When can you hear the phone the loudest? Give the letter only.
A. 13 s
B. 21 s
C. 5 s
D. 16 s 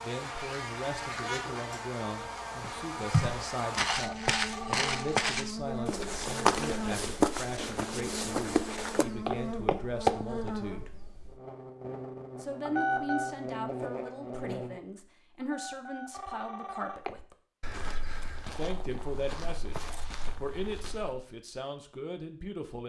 A.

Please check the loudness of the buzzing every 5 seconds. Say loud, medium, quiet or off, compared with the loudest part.
loud, loud, loud, off, off.